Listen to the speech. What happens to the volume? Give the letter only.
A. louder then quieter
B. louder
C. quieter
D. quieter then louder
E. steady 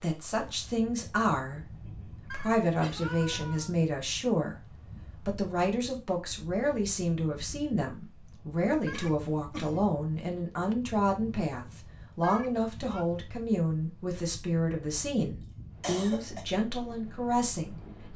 E.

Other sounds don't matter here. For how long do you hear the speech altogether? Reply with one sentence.
You can hear the speech for 18 seconds altogether.